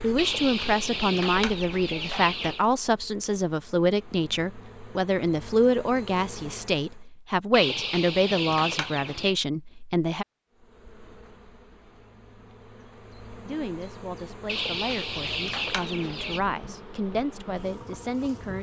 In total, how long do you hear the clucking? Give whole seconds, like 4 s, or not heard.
6 s.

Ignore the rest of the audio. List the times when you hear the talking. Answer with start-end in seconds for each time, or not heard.
0.0-10.2, 13.4-18.5.